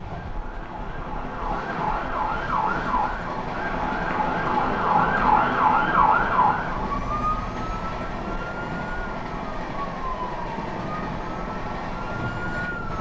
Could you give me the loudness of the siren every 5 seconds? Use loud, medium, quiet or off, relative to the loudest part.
loud, loud, medium.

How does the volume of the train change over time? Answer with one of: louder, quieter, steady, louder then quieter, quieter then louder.
steady.